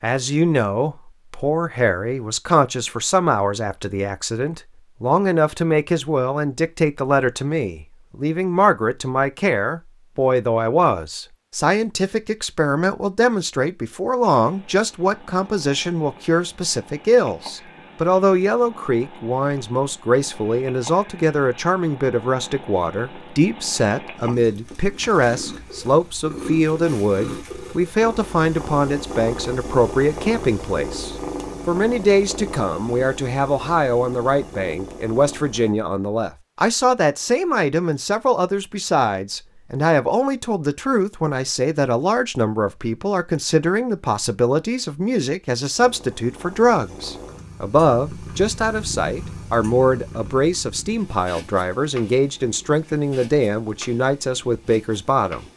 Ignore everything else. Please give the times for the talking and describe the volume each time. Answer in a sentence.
The talking can be heard from 0.0 to 55.5 s, at a steady volume.